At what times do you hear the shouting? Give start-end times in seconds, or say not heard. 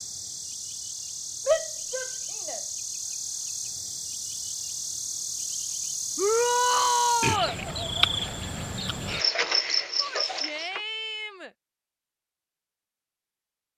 1.4-2.6, 6.2-7.5, 9.9-11.5.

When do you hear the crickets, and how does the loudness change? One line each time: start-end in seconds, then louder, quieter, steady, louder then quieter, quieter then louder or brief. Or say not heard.
0.0-10.8 louder.